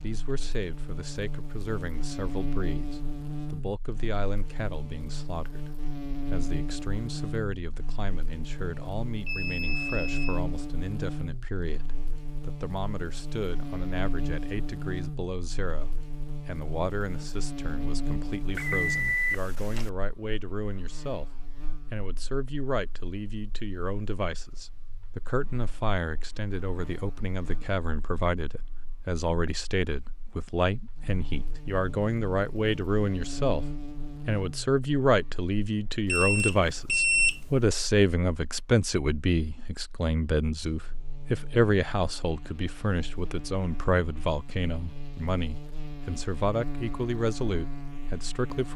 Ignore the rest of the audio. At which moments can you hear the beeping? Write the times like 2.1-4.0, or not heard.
8.8-10.4, 18.6-19.9, 36.0-37.4.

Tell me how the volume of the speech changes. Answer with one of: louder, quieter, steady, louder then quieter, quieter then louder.
louder.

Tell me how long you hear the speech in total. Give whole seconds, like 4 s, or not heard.
48 s.